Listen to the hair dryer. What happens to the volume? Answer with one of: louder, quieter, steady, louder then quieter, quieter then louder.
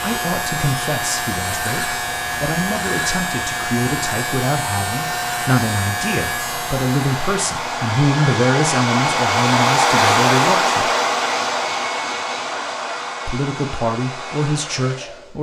louder then quieter.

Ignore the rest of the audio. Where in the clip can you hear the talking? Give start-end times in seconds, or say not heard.
0.0-10.9, 13.2-15.3.